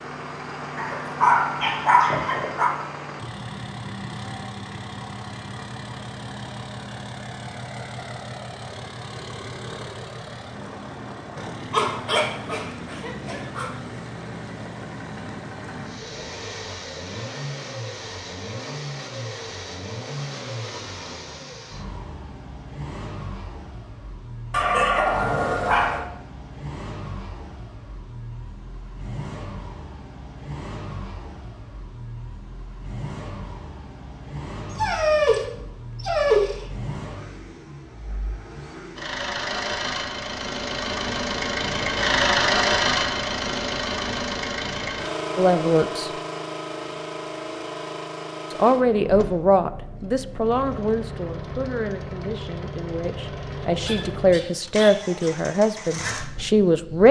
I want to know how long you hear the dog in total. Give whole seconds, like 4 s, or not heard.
9 s.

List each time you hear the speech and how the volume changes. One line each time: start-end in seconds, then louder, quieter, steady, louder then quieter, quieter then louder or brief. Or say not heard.
45.4-46.1 brief
48.5-57.0 quieter then louder.